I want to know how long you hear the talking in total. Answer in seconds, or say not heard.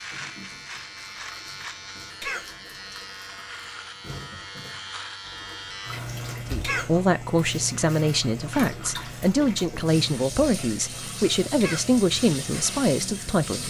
7 s.